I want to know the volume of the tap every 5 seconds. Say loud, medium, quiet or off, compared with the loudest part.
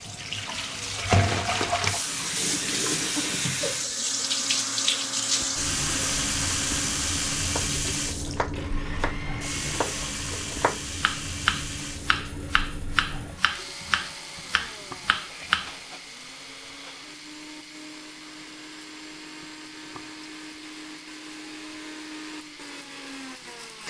loud, loud, medium, quiet, quiet.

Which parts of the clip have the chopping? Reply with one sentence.
The chopping can be heard from 7.4 to 15.8 s.